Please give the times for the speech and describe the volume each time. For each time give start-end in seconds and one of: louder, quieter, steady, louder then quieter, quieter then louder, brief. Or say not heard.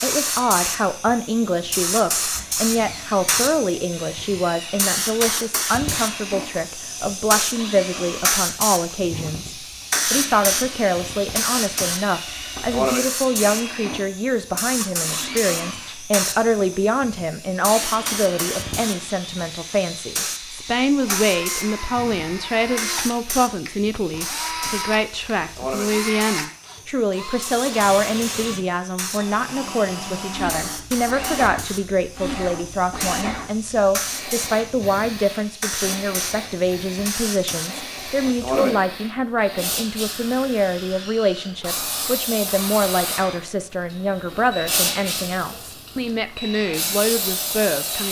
0.0-48.0 steady.